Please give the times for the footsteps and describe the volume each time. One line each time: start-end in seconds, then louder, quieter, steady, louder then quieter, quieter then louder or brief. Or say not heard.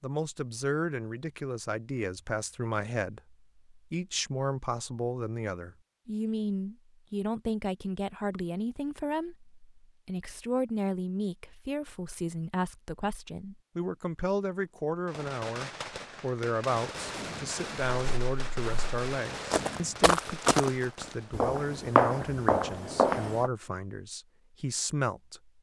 17.8-23.5 louder.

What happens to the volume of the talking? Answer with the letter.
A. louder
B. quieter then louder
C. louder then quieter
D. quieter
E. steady
E.